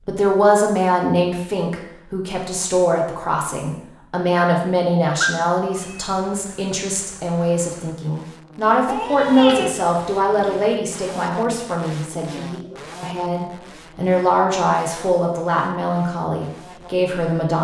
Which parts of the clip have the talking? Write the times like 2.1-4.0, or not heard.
0.1-17.5.